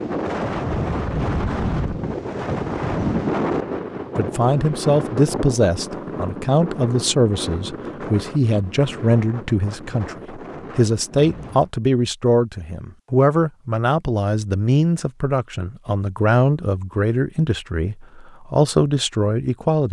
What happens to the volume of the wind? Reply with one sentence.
The loudness of the wind goes down.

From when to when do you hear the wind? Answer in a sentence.
You can hear the wind from 0.0 to 11.7 s.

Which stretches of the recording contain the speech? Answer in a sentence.
You can hear the speech from 4.2 to 19.8 s.